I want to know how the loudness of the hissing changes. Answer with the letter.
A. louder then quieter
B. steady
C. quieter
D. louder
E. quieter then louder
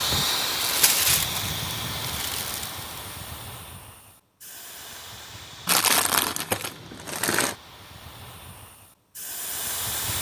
E.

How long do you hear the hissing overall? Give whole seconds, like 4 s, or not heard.
10 s.